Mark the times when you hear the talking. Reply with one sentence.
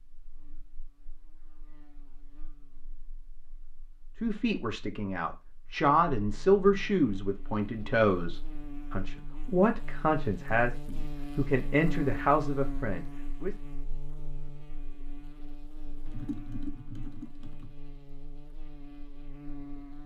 The talking can be heard from 4.2 to 13.6 s.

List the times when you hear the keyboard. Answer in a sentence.
You can hear the keyboard from 16.1 to 17.8 s.